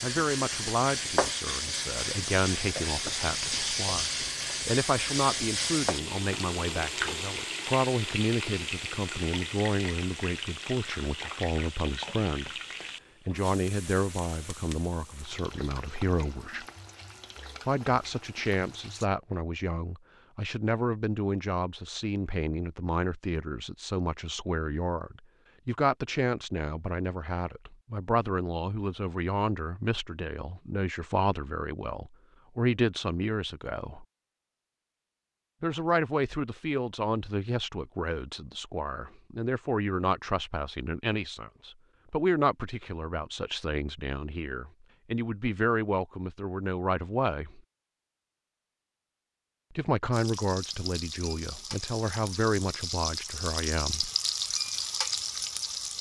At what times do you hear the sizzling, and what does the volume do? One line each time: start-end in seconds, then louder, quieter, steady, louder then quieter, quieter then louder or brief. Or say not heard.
0.0-19.1 quieter
50.1-55.9 louder.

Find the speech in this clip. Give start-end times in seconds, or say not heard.
0.0-12.5, 13.2-16.6, 17.6-34.0, 35.6-47.6, 49.8-54.1.